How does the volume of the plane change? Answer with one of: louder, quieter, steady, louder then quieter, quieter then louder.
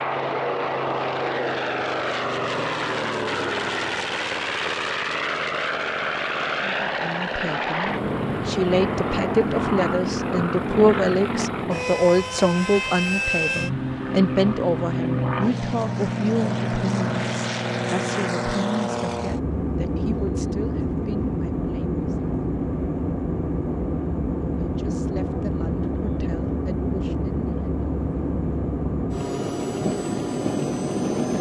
steady.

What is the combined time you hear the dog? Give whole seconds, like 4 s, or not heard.
not heard.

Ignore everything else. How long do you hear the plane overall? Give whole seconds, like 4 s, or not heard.
31 s.